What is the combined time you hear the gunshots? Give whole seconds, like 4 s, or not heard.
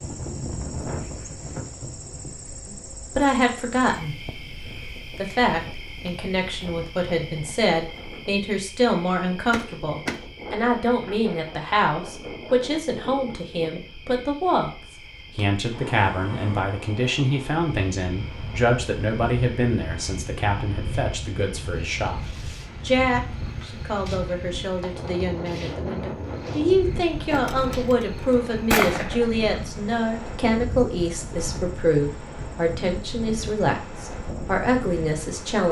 3 s.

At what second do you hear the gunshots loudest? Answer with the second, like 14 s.
29 s.